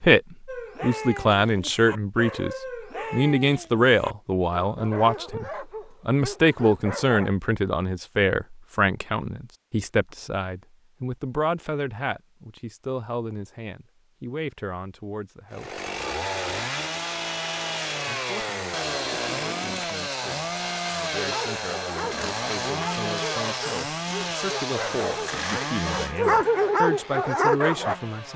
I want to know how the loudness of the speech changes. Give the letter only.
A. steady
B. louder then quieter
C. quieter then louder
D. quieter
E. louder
C.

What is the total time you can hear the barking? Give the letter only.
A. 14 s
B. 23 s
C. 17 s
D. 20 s
A.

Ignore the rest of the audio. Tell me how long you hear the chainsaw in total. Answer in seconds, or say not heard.
13 s.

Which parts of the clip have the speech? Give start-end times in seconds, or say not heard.
0.0-15.8, 18.1-28.3.